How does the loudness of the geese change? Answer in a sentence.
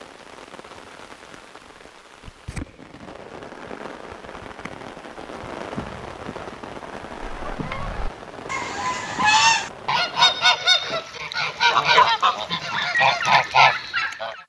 The loudness of the geese goes up.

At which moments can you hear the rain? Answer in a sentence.
You can hear the rain from 0.0 to 10.5 s.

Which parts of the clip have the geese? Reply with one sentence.
The geese can be heard from 7.2 to 14.4 s.